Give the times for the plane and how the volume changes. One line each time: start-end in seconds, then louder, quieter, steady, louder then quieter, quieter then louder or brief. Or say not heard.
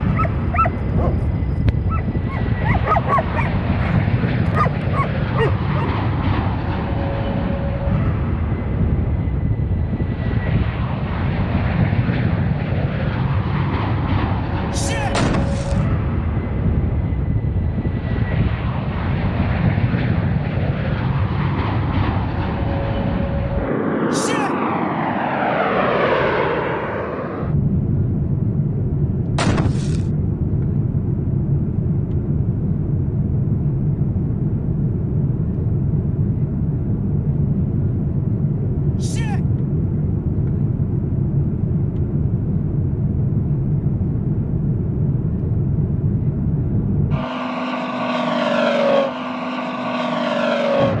0.0-50.9 steady.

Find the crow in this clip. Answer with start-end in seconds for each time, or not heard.
not heard.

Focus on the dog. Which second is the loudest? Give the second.
3 s.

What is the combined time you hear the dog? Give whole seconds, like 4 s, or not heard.
6 s.